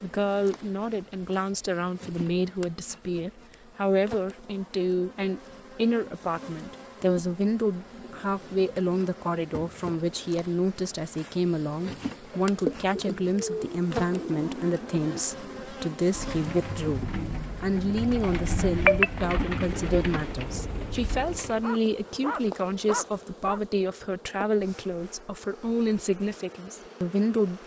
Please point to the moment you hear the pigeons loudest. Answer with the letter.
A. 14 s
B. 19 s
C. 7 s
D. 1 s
B.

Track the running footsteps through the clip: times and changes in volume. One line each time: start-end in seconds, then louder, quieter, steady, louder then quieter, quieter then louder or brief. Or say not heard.
not heard.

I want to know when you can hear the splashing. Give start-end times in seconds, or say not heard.
12.6-13.2.